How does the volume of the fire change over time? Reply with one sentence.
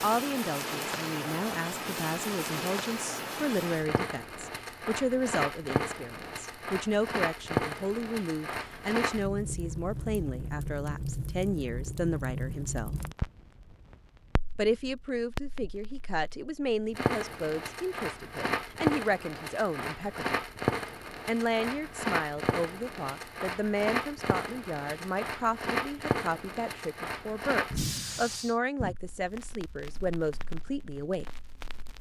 The loudness of the fire stays about the same.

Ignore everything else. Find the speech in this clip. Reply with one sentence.
The speech can be heard from 0.0 to 12.9 s, from 14.6 to 20.3 s and from 21.2 to 31.2 s.